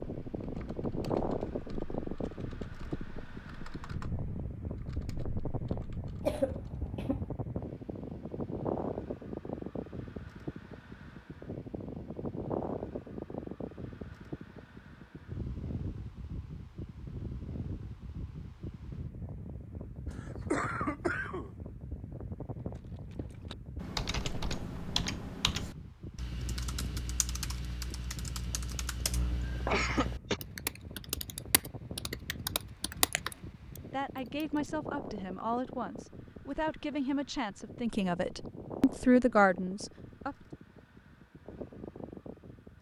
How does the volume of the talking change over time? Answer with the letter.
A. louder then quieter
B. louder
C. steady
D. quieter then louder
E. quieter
B.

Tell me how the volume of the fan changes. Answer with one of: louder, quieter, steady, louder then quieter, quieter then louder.
quieter.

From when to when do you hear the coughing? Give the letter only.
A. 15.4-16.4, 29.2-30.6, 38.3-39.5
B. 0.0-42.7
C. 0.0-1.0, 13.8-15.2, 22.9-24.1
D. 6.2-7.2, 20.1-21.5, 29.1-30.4
D.